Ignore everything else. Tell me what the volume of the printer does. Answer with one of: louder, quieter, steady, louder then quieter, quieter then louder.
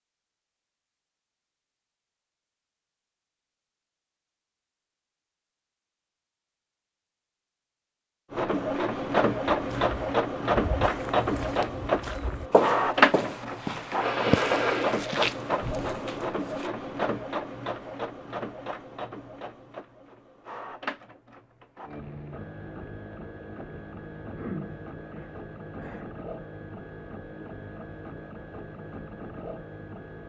quieter.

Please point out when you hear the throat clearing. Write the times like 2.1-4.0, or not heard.
24.4-26.1.